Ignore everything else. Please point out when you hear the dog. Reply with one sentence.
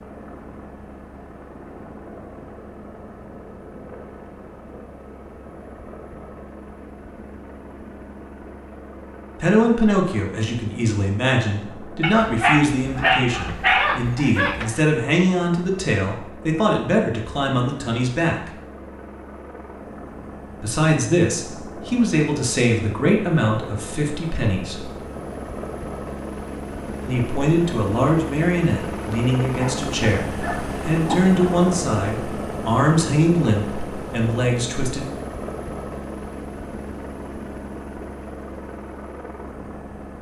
You can hear the dog from 12.0 to 14.8 s and from 29.6 to 31.3 s.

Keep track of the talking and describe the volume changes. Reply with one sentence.
The volume of the talking stays about the same.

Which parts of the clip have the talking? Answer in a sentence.
The talking can be heard from 9.4 to 18.5 s, from 20.6 to 24.9 s and from 27.1 to 35.0 s.